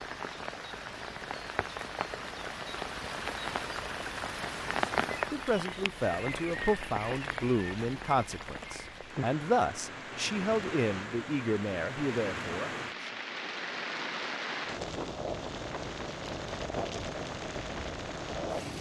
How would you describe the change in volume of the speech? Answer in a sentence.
The volume of the speech stays about the same.